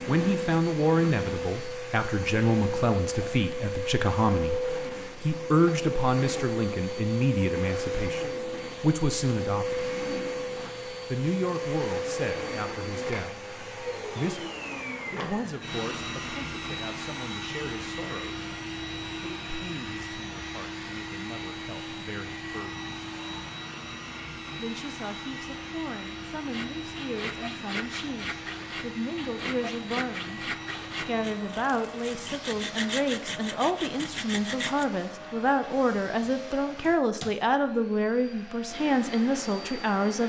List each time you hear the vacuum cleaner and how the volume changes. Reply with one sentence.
You can hear the vacuum cleaner from 0.0 to 40.2 s, getting quieter.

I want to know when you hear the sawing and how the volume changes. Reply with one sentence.
The sawing can be heard from 26.5 to 34.9 s, at a steady volume.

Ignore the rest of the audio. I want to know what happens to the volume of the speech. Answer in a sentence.
The loudness of the speech goes down, then up.